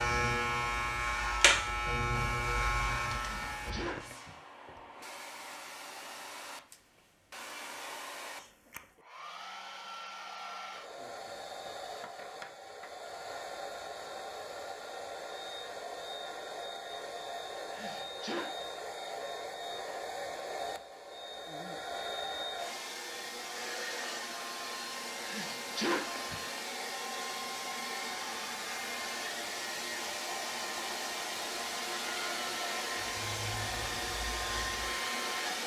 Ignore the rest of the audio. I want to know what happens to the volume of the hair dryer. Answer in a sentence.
The loudness of the hair dryer goes up.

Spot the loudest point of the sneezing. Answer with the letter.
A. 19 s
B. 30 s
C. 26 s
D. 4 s
C.